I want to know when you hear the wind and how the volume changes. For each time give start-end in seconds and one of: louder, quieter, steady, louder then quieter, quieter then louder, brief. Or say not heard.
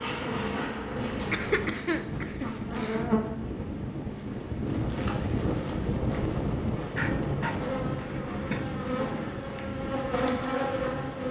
0.0-11.2 louder then quieter.